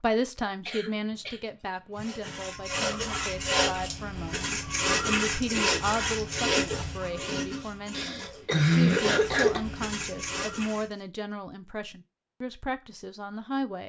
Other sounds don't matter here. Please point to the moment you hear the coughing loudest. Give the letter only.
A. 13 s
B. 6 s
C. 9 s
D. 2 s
C.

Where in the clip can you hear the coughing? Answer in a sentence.
You can hear the coughing from 0.7 to 2.0 s and from 7.9 to 9.6 s.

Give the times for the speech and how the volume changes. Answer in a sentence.
You can hear the speech from 0.0 to 13.8 s, at a steady volume.